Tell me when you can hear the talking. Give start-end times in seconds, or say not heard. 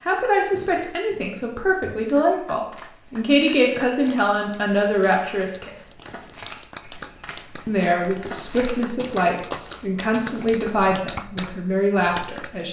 0.0-5.7, 7.7-12.6.